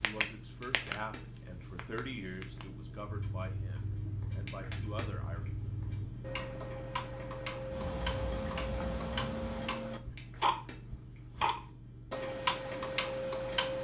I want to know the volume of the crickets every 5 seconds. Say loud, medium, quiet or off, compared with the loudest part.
loud, loud, medium.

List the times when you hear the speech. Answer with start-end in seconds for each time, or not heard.
0.0-5.4.